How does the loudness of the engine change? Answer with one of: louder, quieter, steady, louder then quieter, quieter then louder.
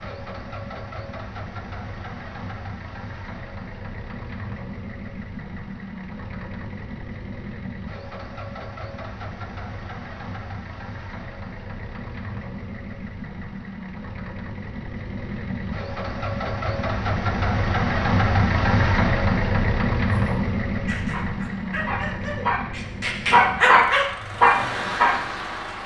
louder then quieter.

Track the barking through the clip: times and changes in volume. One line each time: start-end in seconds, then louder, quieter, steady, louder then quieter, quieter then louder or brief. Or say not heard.
20.1-25.8 louder.